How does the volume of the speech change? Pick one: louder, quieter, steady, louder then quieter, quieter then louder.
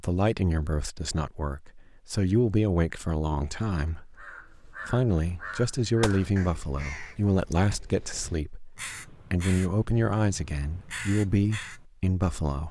steady.